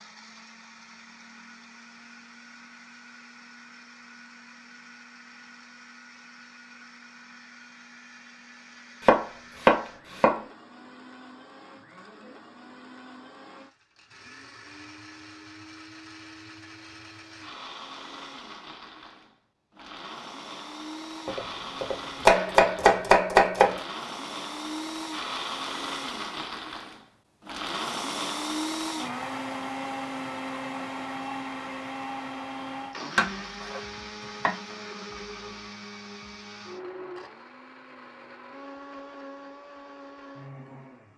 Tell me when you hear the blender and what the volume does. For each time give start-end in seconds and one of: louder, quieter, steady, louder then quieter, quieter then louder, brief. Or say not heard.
0.0-41.1 louder then quieter.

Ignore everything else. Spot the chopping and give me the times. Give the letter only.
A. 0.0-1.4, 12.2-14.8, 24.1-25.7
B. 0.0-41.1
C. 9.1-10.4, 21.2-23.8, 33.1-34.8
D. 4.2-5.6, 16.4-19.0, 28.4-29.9
C.